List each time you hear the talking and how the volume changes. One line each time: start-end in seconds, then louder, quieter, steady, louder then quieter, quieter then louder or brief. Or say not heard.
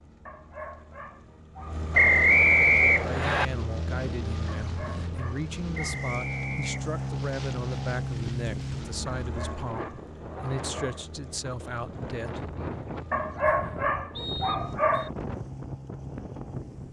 2.9-12.6 steady.